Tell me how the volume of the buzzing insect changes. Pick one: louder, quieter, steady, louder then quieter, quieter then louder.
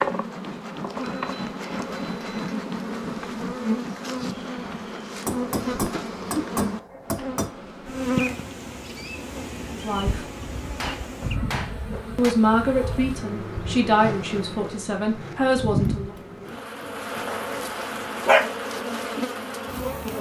steady.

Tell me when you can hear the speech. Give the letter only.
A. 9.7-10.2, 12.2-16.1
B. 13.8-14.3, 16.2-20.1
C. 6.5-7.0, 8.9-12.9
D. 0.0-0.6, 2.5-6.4
A.